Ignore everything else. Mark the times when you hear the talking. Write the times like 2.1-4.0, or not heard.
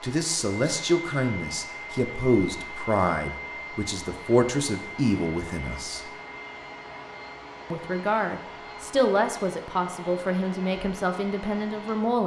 0.0-6.1, 7.7-12.2.